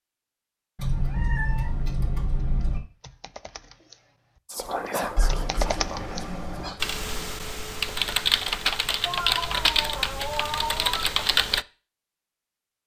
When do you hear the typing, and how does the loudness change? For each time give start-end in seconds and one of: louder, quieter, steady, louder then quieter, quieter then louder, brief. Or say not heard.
2.4-11.7 louder.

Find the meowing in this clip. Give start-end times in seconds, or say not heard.
0.8-2.8, 5.2-6.8, 9.1-11.1.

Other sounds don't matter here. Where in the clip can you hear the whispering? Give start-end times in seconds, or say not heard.
4.5-6.9.